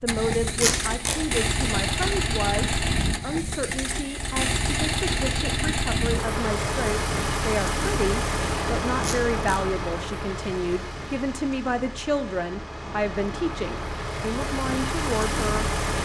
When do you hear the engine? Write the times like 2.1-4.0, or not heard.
0.0-16.0.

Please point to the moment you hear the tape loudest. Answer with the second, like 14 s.
1 s.